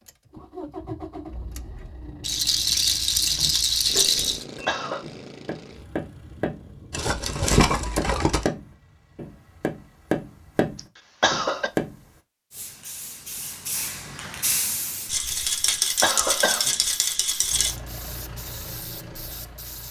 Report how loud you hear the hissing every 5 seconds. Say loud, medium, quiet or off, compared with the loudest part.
off, off, loud, medium.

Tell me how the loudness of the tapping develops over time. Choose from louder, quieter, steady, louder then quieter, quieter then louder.
louder.